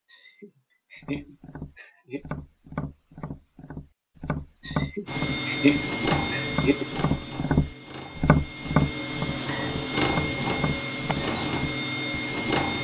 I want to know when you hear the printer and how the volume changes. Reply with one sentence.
You can hear the printer from 5.0 to 12.7 s, getting quieter then louder.